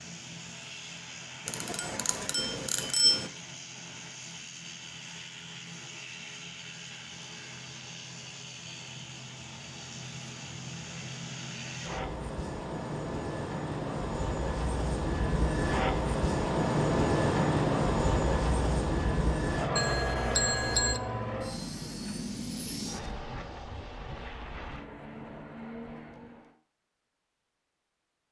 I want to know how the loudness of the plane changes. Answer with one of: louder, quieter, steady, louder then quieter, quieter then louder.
louder then quieter.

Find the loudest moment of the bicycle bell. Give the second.
3 s.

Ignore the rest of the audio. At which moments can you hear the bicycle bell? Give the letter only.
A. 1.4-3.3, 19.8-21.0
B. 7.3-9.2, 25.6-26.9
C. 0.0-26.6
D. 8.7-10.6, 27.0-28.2
A.